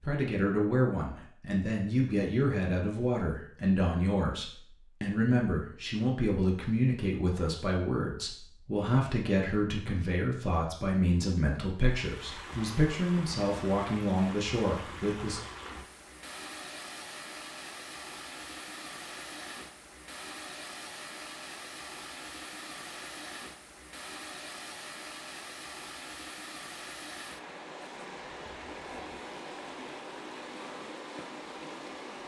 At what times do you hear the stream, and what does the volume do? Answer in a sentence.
The stream can be heard from 11.8 to 32.2 s, at a steady volume.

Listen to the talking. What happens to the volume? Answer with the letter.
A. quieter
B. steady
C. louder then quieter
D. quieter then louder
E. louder
B.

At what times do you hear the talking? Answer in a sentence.
You can hear the talking from 0.0 to 15.4 s.